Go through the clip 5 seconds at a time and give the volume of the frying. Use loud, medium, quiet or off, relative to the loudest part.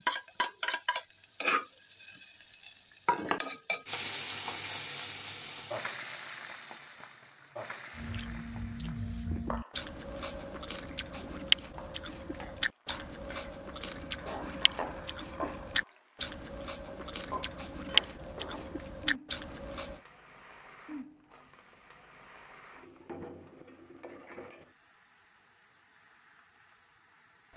loud, medium, medium, medium, quiet, quiet.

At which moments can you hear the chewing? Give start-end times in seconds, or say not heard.
8.0-20.0.